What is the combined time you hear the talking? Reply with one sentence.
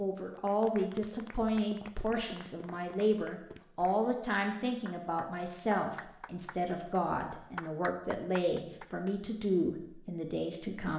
You can hear the talking for 11 seconds altogether.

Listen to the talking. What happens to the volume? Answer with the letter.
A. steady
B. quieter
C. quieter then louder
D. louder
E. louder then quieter
A.